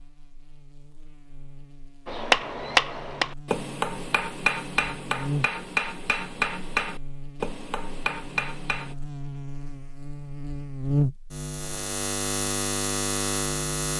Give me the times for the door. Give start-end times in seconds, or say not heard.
not heard.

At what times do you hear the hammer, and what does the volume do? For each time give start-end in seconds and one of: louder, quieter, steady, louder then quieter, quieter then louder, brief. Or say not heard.
2.0-8.9 quieter.